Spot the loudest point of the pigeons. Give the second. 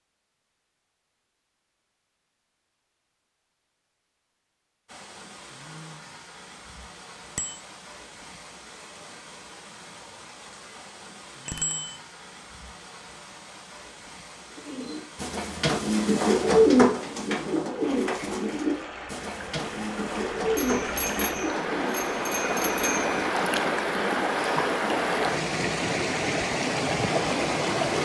17 s.